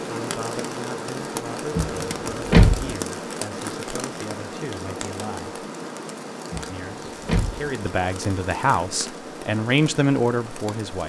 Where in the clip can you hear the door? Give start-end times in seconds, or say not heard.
1.7-2.9, 6.5-7.6.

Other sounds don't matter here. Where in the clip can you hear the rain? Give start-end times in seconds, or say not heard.
0.0-11.0.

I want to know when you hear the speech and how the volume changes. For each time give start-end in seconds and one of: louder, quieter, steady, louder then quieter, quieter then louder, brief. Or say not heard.
0.1-5.7 steady
6.7-11.0 louder.